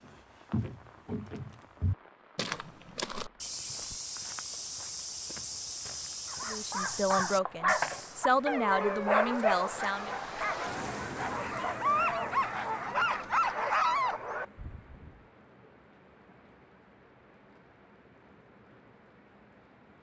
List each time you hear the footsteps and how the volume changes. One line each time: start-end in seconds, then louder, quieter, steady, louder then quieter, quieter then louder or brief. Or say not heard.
0.0-8.2 steady.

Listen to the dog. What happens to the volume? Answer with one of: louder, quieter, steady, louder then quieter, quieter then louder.
quieter then louder.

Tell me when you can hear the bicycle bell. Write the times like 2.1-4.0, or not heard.
not heard.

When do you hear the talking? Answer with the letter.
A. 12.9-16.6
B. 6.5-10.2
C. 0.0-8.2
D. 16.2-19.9
B.